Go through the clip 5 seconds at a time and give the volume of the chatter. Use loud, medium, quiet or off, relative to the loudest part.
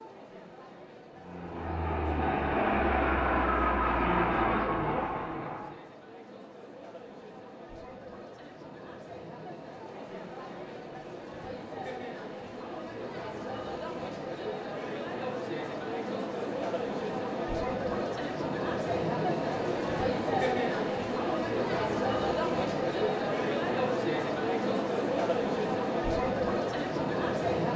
quiet, quiet, medium, loud, loud, loud.